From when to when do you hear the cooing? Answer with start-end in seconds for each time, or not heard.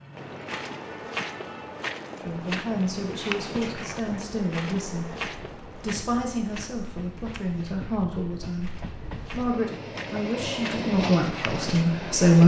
not heard.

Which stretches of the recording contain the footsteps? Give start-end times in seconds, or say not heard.
0.1-11.9.